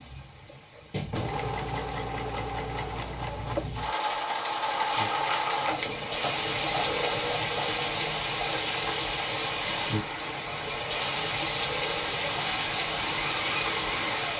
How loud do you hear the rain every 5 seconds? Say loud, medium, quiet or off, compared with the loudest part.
quiet, loud, loud.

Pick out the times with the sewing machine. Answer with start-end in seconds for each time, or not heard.
0.0-14.3.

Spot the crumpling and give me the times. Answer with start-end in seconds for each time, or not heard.
4.8-6.0.